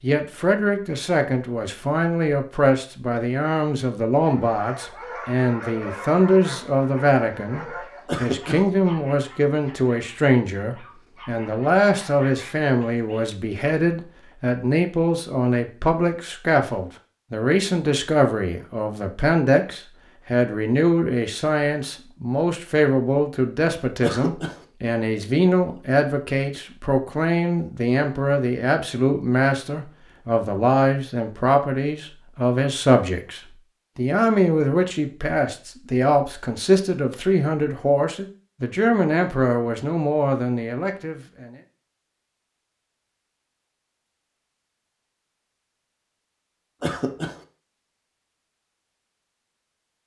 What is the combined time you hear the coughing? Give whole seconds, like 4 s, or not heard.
2 s.